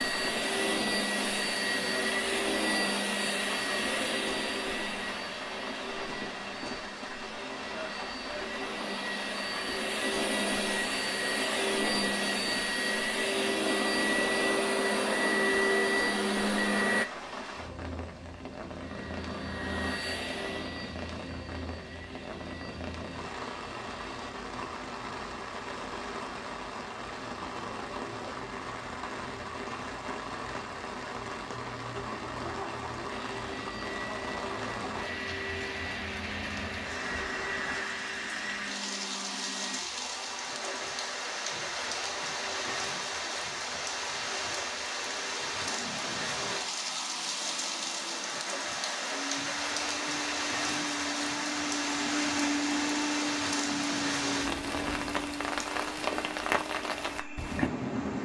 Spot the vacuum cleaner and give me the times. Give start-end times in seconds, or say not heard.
0.0-17.1, 18.8-24.1, 33.0-58.1.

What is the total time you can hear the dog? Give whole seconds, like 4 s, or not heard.
not heard.